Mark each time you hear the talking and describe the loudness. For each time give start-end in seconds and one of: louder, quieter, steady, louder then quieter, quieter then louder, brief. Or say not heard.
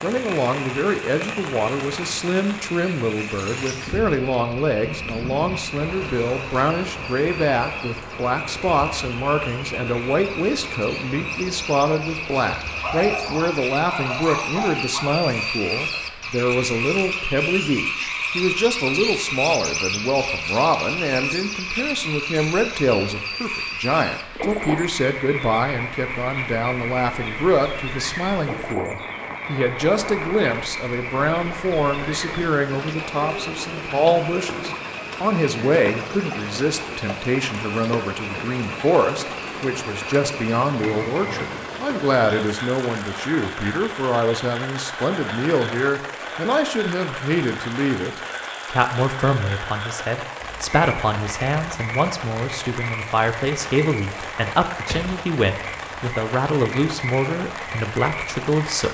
0.0-58.8 steady.